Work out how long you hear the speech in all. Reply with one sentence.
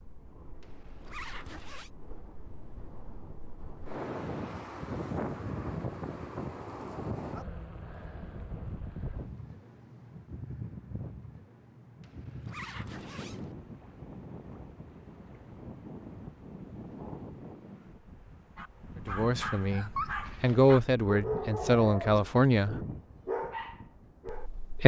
You can hear the speech for 4 seconds altogether.